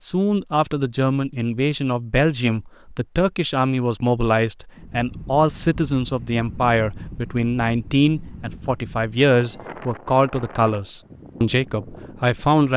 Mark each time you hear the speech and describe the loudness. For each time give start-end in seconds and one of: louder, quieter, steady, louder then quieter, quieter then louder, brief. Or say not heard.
0.0-12.7 steady.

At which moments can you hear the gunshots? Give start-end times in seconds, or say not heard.
not heard.